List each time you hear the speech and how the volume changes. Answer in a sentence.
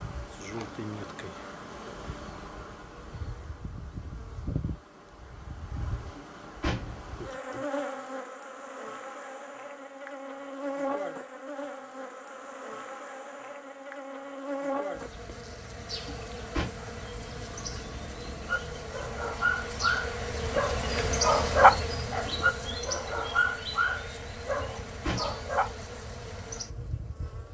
The speech can't be heard in this clip.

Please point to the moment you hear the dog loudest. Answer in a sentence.
The volume of the dog peaks at 22 seconds.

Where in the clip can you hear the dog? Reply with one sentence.
The dog can be heard from 18.4 to 25.9 s.